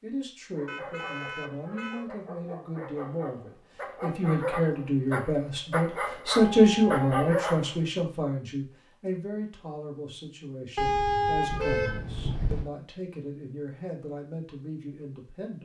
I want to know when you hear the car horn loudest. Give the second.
11 s.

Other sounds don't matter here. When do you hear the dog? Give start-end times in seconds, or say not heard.
0.5-8.0.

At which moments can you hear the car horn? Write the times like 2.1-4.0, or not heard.
0.7-2.0, 6.3-7.2, 10.8-12.7.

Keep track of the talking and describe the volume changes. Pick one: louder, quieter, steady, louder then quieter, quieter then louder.
louder then quieter.